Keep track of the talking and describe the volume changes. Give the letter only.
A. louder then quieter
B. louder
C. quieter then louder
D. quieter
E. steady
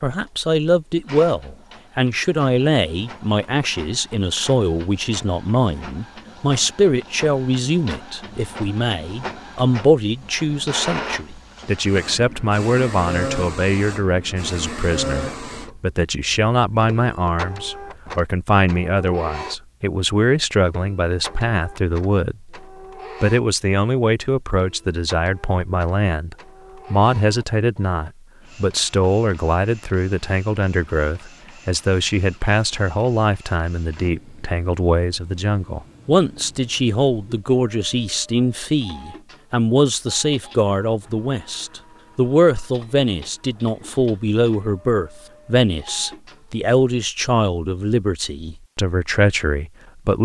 E.